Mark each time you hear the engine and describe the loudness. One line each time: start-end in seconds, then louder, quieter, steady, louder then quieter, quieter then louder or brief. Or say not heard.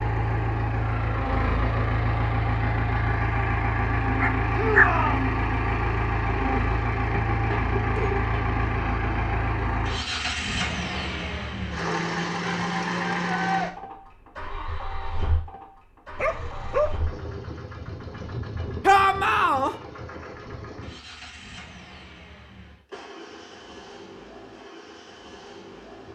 0.0-26.1 quieter.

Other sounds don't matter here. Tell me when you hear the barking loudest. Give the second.
5 s.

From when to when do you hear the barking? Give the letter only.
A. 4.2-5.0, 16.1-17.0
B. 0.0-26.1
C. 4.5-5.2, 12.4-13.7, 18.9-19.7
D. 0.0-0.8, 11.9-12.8
A.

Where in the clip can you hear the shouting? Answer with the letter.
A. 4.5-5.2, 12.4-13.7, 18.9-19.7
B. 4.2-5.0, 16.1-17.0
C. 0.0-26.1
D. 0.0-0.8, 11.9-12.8
A.